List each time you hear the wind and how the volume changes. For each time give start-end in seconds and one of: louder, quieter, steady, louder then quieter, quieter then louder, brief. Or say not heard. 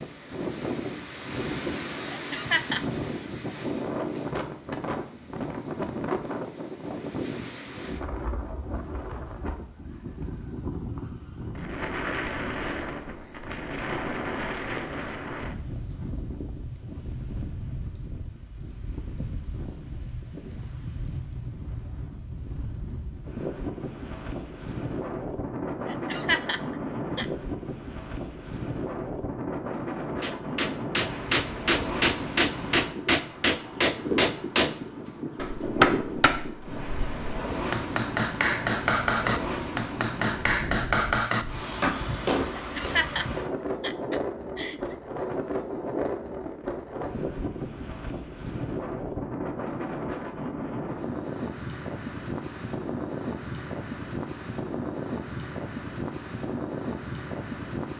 0.0-57.9 steady.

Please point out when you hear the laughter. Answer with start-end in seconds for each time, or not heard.
2.1-2.9, 25.9-27.2, 42.5-45.0.